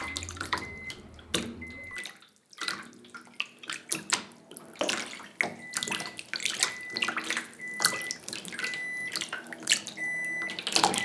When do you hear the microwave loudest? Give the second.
11 s.